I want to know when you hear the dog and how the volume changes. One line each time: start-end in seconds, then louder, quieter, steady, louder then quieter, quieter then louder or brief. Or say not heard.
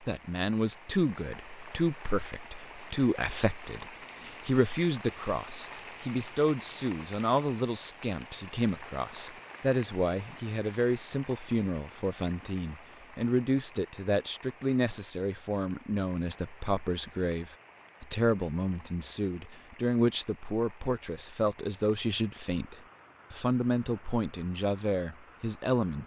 not heard.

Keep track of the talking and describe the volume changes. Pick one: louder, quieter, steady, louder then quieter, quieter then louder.
steady.